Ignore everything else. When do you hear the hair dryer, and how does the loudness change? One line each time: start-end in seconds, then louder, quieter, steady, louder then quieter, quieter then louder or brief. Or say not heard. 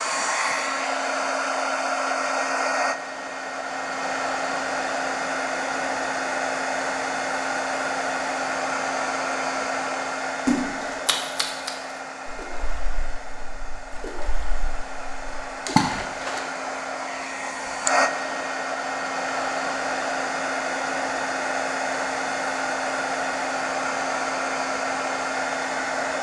0.0-26.1 quieter then louder.